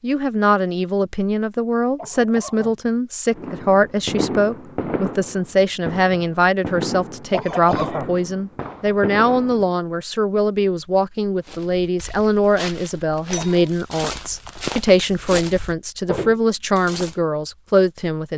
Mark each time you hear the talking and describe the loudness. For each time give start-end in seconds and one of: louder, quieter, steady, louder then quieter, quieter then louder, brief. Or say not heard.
0.0-18.3 steady.